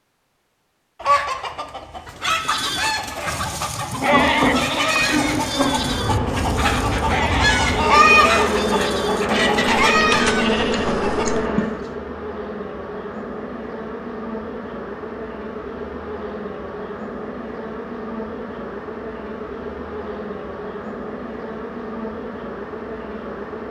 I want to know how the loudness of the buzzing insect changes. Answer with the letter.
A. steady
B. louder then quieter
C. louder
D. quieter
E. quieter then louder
D.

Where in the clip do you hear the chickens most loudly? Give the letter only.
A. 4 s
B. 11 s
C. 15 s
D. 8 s
D.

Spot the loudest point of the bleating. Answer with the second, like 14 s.
4 s.